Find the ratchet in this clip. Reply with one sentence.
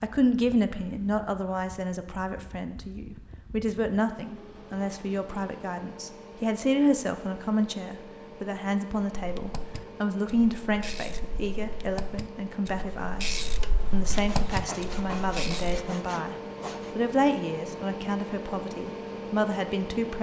You can hear the ratchet from 9.2 to 15.8 s.